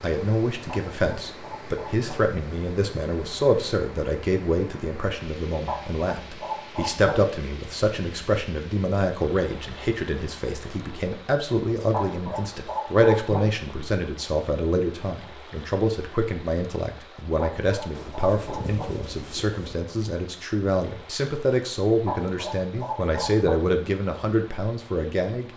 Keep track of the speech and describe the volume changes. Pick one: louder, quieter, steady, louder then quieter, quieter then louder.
steady.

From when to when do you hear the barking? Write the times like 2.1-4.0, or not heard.
0.7-2.1, 5.7-7.2, 11.9-13.4, 17.4-18.9, 22.1-23.6.